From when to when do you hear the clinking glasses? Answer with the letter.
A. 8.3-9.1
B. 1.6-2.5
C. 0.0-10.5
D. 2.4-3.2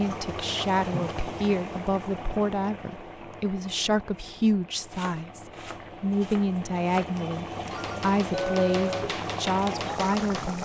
A.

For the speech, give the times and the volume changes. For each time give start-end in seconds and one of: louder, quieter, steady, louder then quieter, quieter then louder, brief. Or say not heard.
0.0-10.5 steady.